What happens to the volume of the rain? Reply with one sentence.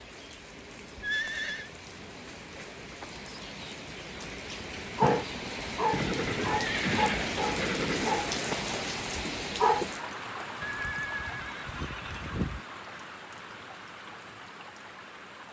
The volume of the rain goes up, then down.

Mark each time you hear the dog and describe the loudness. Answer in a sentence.
The dog can be heard from 5.0 to 9.9 s, getting quieter.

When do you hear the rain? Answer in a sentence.
You can hear the rain from 0.0 to 15.4 s.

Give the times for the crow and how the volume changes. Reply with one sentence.
You can't hear the crow here.